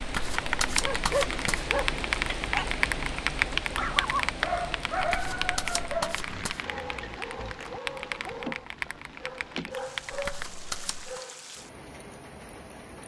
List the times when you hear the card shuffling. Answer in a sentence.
The card shuffling can be heard from 0.0 to 1.6 s, from 5.0 to 6.7 s and from 10.1 to 11.2 s.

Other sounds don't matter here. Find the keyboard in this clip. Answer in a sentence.
The keyboard can be heard from 0.1 to 10.6 s.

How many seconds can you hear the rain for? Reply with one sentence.
You can hear the rain for 13 seconds altogether.